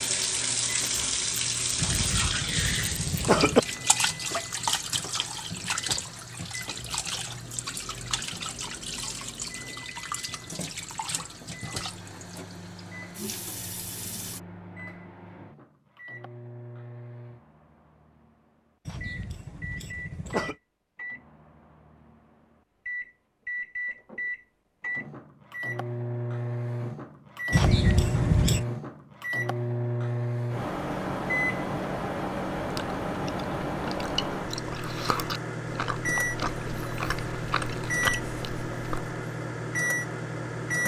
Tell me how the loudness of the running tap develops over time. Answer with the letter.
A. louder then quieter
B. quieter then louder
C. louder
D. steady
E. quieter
E.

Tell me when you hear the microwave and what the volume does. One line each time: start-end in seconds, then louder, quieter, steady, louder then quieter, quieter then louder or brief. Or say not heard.
0.0-40.8 louder.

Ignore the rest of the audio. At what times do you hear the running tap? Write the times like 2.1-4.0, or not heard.
0.0-14.4.